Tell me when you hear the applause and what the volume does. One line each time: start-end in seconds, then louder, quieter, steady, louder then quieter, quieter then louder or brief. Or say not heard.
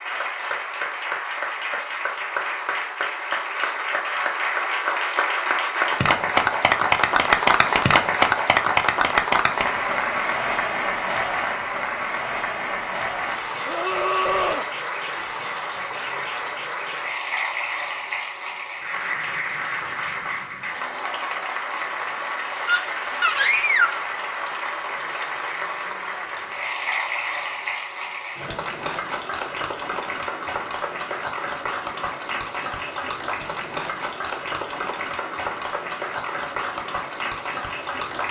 0.0-38.2 quieter.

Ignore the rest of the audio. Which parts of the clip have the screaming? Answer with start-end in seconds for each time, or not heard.
13.7-14.7, 22.6-24.1.